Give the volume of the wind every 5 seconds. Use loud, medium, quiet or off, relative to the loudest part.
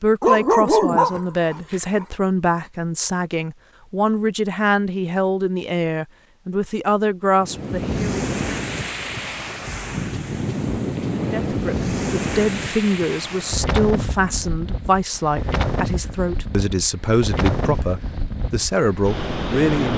off, loud, loud, loud.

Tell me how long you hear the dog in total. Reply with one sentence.
The dog can be heard for 2 seconds in total.